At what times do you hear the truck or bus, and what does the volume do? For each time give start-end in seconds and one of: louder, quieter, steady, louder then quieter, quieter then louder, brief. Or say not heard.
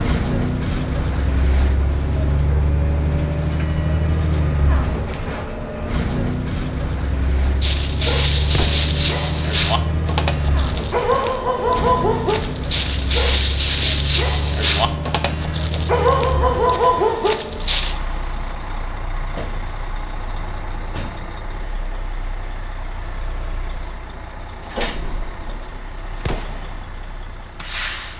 0.0-28.1 quieter.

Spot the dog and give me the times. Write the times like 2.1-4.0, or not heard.
7.6-17.9.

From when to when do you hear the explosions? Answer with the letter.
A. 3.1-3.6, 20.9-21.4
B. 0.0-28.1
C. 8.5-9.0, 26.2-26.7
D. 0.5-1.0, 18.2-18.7
C.